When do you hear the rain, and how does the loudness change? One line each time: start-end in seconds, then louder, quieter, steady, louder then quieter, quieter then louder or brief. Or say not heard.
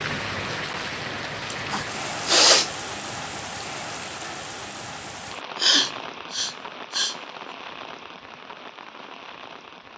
0.0-9.9 quieter.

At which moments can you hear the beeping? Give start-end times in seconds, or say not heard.
not heard.